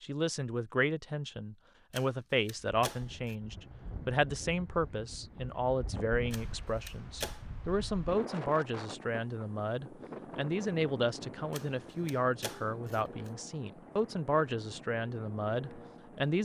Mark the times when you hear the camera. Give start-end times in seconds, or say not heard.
1.9-3.4, 6.3-7.4, 11.5-13.3.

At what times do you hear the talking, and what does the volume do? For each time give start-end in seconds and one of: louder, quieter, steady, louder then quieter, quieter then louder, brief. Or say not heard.
0.0-16.3 steady.